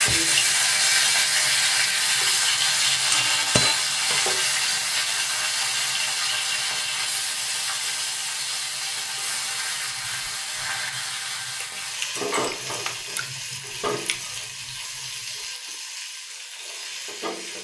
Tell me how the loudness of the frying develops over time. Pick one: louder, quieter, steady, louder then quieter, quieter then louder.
quieter.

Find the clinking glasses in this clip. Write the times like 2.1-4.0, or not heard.
3.1-3.8.